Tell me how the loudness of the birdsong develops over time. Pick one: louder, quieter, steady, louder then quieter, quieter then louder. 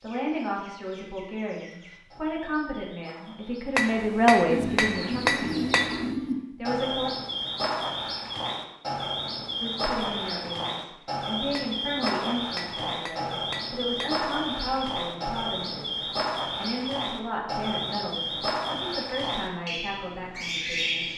louder.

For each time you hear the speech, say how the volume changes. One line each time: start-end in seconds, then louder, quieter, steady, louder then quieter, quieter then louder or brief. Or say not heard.
0.0-5.9 louder then quieter
6.5-7.1 brief
9.6-21.1 steady.